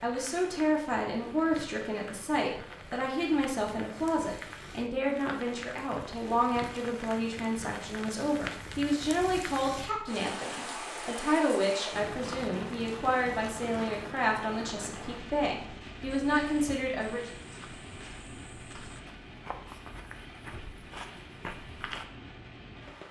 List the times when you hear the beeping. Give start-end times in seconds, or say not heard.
not heard.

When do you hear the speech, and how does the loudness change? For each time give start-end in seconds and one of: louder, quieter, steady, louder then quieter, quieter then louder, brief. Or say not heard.
0.0-17.3 steady.